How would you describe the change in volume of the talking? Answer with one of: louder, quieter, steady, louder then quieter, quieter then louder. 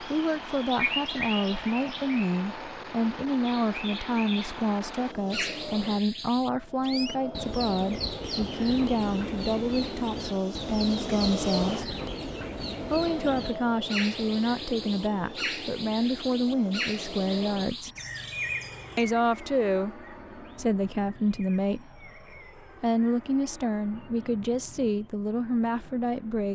steady.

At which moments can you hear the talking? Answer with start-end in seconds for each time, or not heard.
0.0-11.9, 12.8-17.9, 18.9-22.1, 22.8-26.4.